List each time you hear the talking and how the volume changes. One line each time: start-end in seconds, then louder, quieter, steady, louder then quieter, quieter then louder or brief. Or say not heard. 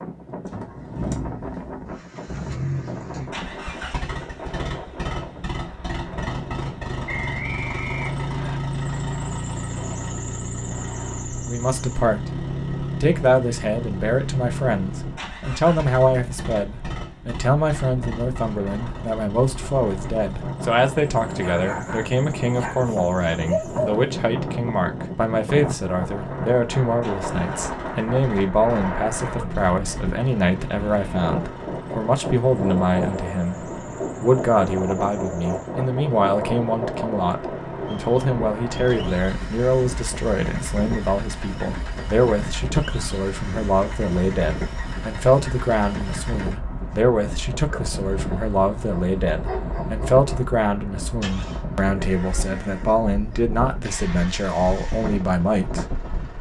11.4-12.3 brief
13.0-56.0 steady.